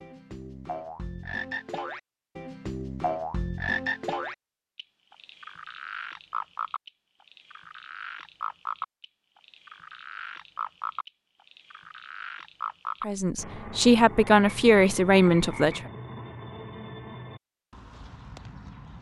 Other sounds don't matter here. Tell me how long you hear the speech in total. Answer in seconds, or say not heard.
3 s.